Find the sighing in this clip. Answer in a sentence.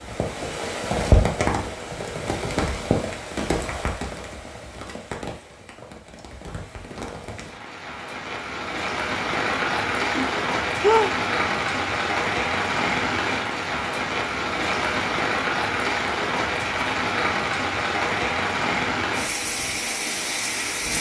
You can hear the sighing from 10.2 to 11.2 s.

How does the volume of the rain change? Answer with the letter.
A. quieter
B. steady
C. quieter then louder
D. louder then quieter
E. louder
C.